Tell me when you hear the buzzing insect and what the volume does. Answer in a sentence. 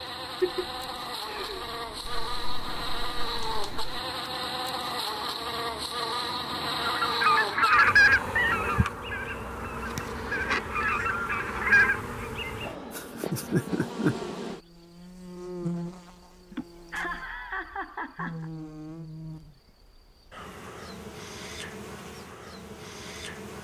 The buzzing insect can be heard from 0.0 to 23.6 s, getting quieter.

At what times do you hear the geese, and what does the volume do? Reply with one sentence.
You can hear the geese from 6.8 to 12.2 s, getting quieter then louder.